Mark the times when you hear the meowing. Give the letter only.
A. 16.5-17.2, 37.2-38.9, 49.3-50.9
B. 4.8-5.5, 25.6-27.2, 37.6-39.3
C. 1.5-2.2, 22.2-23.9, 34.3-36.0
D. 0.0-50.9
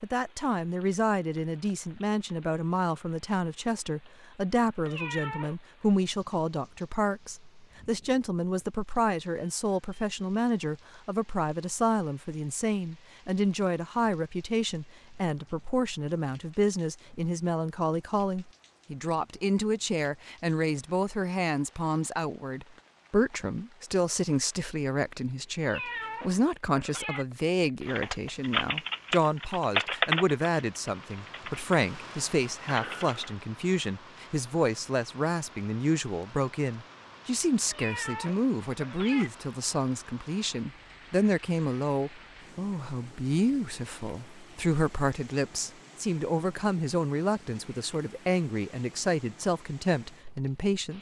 B.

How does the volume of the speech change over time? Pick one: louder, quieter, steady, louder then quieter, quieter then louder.
steady.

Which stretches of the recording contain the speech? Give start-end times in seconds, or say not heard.
0.0-50.9.